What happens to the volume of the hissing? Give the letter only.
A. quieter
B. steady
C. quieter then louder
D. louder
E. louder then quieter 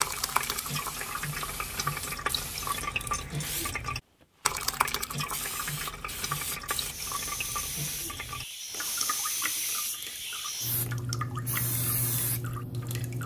D.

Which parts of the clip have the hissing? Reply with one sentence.
You can hear the hissing from 0.1 to 13.2 s.